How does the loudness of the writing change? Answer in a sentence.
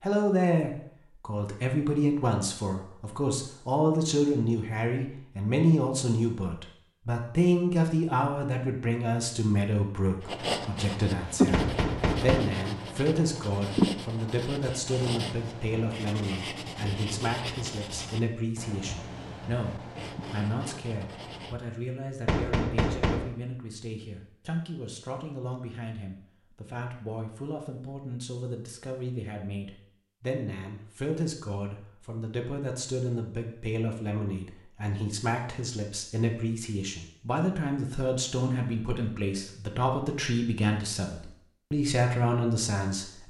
The volume of the writing goes down.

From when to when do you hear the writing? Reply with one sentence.
The writing can be heard from 10.2 to 21.6 s.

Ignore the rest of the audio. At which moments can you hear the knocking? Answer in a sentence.
The knocking can be heard from 11.5 to 12.4 s and from 22.2 to 23.3 s.